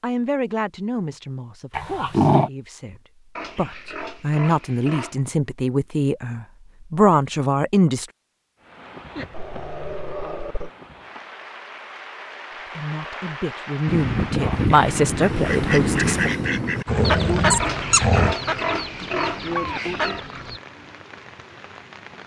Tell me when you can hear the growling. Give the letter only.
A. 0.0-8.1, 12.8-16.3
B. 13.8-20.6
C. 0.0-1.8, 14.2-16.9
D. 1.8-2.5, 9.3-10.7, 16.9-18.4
D.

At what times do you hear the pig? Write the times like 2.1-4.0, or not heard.
3.4-5.2, 17.6-20.2.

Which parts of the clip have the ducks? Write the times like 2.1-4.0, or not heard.
13.8-20.6.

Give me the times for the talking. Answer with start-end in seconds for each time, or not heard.
0.0-8.1, 12.8-16.3.